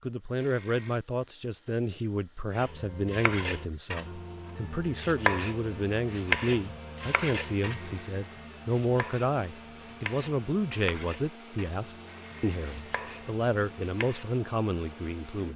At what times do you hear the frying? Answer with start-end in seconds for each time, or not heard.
not heard.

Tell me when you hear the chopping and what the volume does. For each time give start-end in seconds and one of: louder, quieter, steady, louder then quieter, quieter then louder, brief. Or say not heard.
2.5-14.3 louder then quieter.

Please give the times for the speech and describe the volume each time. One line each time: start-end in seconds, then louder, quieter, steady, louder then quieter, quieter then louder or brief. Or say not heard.
0.0-15.5 steady.